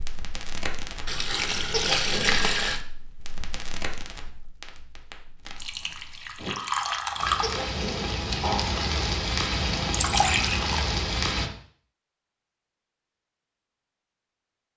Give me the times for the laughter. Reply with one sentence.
You can't hear the laughter here.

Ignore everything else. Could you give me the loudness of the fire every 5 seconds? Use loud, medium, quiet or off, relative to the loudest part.
medium, loud, loud.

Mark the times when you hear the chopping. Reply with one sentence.
The chopping can't be heard in this clip.